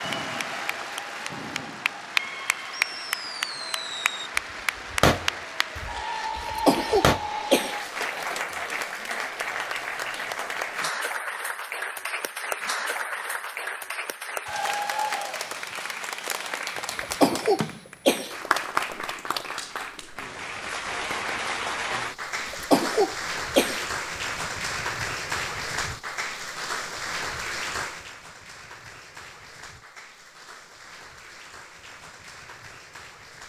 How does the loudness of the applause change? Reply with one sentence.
The volume of the applause goes down.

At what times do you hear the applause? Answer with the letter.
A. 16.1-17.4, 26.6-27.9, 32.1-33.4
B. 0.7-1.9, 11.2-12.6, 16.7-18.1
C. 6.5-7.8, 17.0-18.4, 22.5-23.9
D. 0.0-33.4
D.